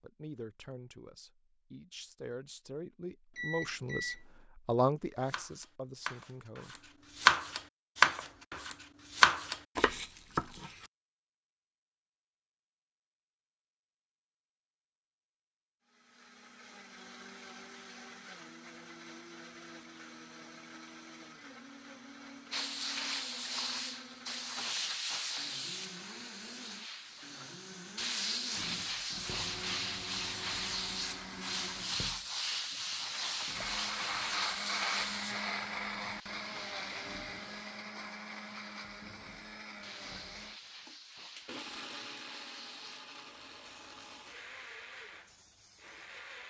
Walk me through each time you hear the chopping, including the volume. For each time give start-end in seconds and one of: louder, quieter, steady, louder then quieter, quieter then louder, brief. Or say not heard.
5.2-10.7 louder then quieter.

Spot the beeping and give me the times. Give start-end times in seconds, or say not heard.
3.4-4.2.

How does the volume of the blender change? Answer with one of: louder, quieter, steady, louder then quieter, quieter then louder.
louder then quieter.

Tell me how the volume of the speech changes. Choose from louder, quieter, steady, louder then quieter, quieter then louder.
louder then quieter.